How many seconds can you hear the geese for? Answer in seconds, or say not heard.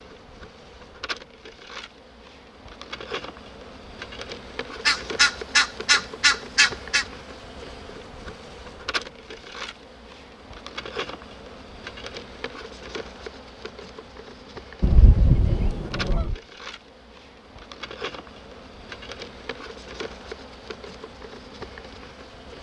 4 s.